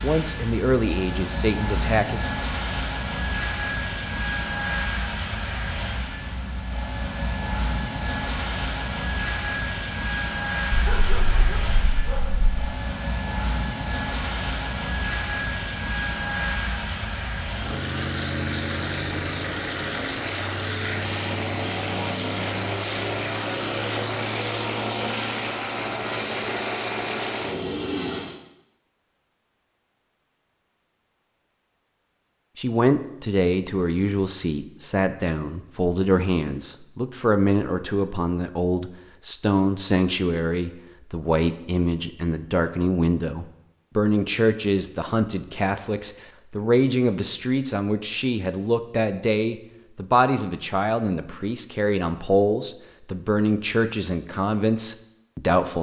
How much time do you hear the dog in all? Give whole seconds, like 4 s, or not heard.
2 s.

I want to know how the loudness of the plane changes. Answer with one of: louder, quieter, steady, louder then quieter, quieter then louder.
steady.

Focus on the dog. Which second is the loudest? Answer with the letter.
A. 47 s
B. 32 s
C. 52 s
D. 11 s
D.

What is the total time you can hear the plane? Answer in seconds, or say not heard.
28 s.